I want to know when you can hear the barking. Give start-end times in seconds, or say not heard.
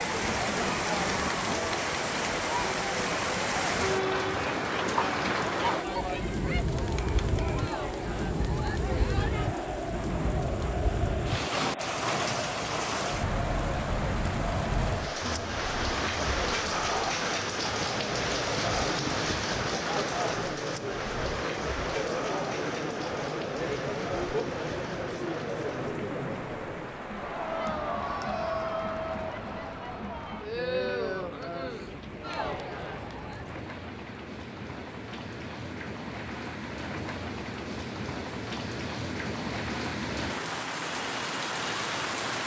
not heard.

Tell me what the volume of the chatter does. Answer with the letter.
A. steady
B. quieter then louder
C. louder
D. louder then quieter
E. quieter
A.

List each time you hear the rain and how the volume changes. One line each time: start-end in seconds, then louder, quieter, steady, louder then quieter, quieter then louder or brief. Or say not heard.
0.0-42.4 quieter then louder.